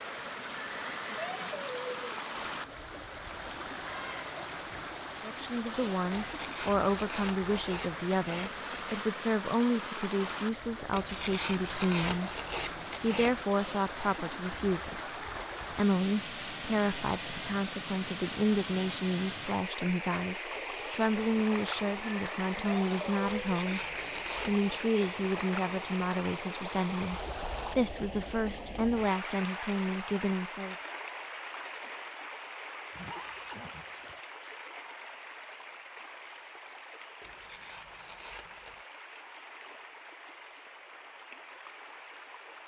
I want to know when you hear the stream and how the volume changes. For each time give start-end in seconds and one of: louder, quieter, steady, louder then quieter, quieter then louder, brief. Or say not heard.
0.0-42.6 quieter.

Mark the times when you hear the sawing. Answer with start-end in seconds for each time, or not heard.
6.1-9.1, 10.9-13.4, 23.2-24.8, 37.2-38.9.